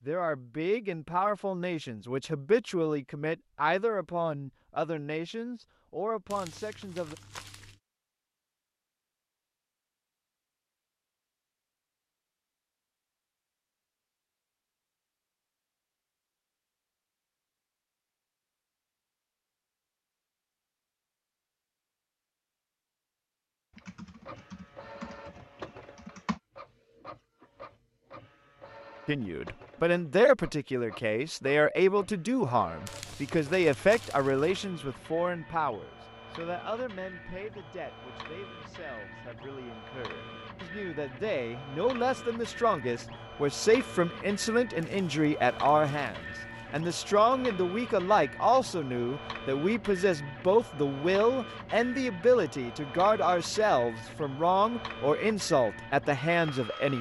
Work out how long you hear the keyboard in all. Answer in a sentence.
The keyboard can be heard for 3 seconds in total.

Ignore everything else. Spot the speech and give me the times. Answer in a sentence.
You can hear the speech from 0.1 to 7.2 s and from 29.1 to 56.9 s.